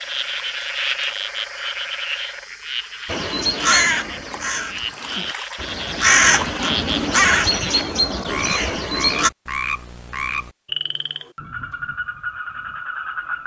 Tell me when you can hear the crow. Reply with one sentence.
You can hear the crow from 3.0 to 9.3 s.